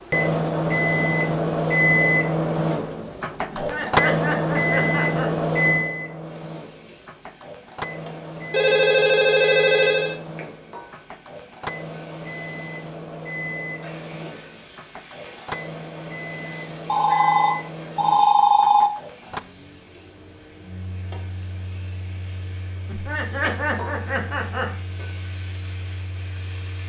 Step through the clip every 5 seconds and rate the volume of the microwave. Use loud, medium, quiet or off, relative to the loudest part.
loud, medium, quiet, quiet, quiet, quiet.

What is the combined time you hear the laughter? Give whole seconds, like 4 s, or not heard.
4 s.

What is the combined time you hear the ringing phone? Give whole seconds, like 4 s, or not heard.
4 s.